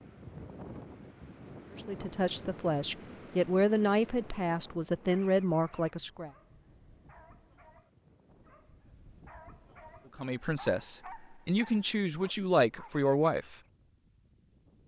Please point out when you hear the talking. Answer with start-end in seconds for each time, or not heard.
1.7-6.3, 10.2-13.6.